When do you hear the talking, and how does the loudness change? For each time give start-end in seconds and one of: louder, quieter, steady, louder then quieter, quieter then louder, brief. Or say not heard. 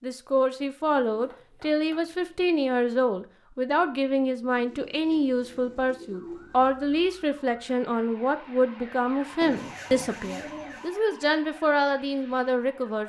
0.0-13.0 steady.